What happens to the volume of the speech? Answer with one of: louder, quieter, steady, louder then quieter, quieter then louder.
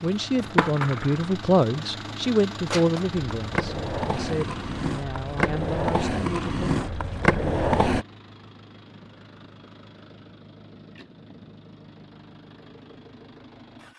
quieter.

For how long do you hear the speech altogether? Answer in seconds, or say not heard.
7 s.